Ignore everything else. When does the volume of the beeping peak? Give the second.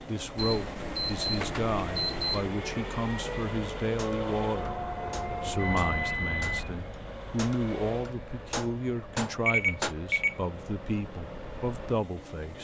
10 s.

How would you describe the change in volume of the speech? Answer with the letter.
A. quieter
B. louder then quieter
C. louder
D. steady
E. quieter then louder
D.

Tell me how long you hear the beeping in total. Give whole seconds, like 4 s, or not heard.
5 s.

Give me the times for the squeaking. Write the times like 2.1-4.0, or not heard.
4.0-6.2.